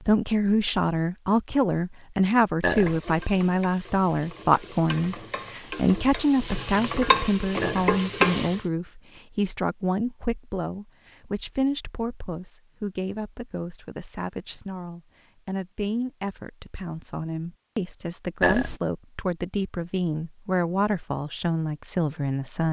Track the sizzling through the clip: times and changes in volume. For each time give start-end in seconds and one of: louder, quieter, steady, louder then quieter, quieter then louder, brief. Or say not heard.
2.6-8.6 louder.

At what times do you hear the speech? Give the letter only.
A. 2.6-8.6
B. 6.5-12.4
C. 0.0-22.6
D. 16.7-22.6
C.